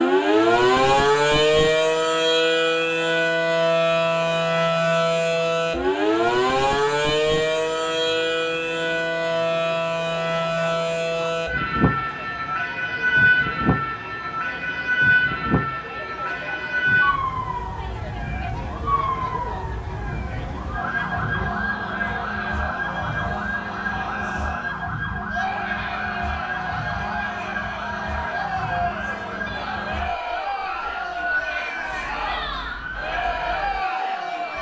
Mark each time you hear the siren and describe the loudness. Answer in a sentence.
The siren can be heard from 0.0 to 34.5 s, getting quieter.